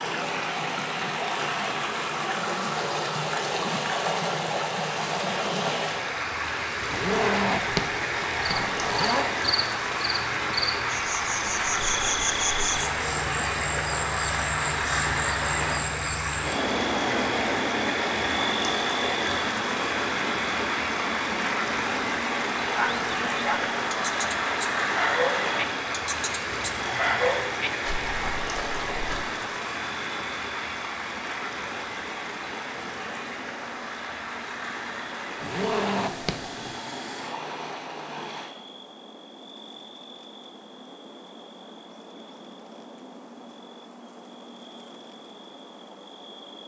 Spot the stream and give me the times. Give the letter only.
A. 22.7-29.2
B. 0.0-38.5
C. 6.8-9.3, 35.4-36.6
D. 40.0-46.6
B.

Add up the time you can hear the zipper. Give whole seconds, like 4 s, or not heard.
4 s.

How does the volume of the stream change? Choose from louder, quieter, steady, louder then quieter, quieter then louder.
quieter.